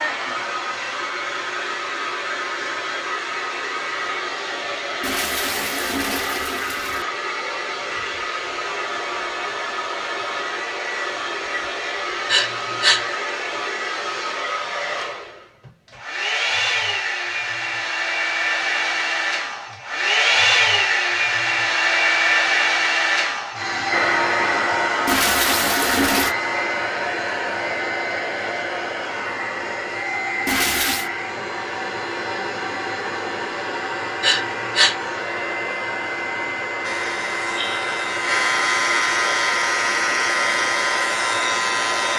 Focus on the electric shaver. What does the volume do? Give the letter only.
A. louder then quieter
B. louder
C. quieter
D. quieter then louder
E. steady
B.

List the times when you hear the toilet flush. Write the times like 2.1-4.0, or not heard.
5.0-7.0, 25.1-26.4, 30.4-31.1.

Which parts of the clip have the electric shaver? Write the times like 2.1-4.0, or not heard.
36.8-42.1.